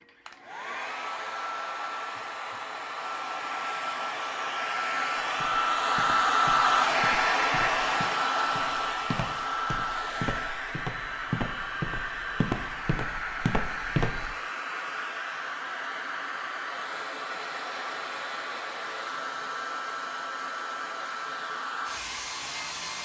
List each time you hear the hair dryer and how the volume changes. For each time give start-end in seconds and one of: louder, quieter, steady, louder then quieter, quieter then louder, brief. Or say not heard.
0.0-22.9 louder then quieter.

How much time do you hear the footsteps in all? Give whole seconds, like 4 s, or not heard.
9 s.